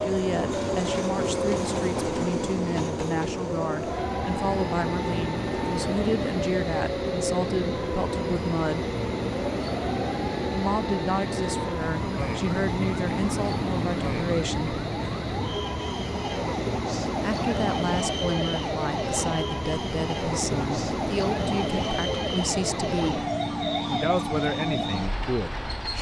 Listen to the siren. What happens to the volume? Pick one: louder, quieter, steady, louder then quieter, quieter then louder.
steady.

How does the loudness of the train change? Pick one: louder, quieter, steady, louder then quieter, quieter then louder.
steady.